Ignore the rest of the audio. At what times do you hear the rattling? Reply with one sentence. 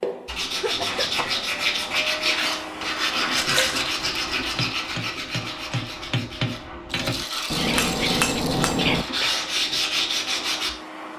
The rattling can be heard from 3.4 to 4.0 s and from 6.9 to 8.8 s.